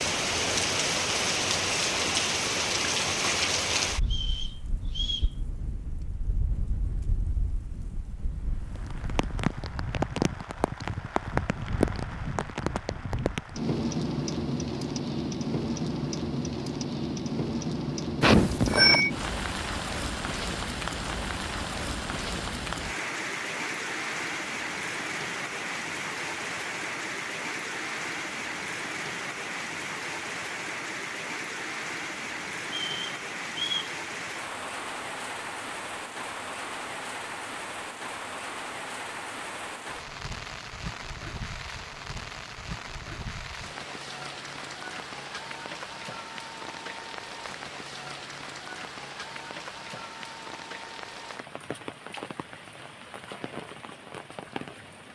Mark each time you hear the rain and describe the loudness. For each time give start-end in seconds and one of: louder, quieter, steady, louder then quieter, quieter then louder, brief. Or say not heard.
0.0-55.1 quieter.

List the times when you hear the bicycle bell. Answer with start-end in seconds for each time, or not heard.
18.2-19.1.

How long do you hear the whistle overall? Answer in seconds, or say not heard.
3 s.